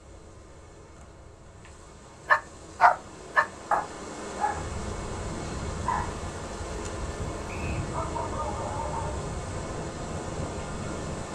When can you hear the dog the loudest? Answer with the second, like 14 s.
3 s.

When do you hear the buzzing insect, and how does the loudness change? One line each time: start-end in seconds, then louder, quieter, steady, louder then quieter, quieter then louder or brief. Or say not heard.
0.0-11.3 louder.